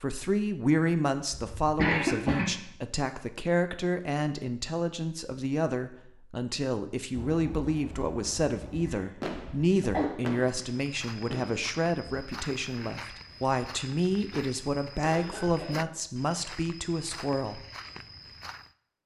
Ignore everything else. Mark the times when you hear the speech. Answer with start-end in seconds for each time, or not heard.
0.0-17.6.